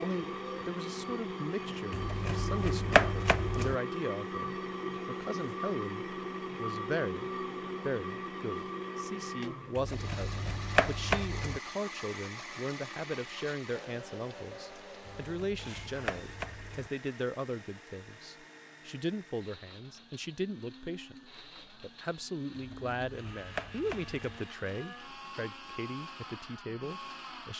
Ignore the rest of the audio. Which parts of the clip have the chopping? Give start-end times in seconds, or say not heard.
1.9-3.8, 9.8-11.6, 15.1-16.9, 22.6-24.4.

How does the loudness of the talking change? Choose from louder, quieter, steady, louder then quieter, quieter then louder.
steady.